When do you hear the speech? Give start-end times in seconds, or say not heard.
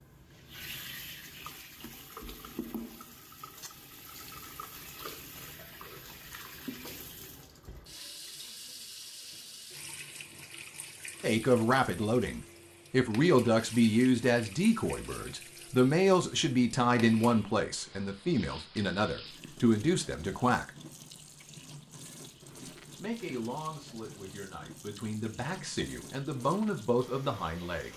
11.2-20.7, 22.6-27.9.